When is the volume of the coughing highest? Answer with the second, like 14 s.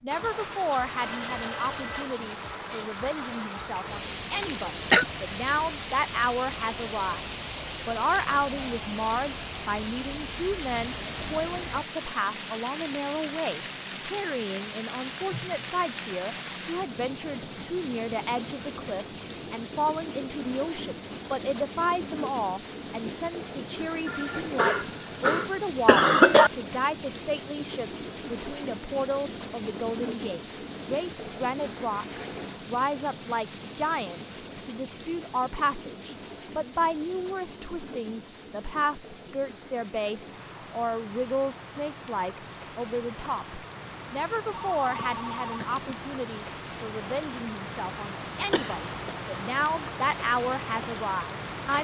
26 s.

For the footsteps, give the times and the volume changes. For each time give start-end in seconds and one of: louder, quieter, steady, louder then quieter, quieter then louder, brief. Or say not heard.
not heard.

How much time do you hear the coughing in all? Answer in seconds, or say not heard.
3 s.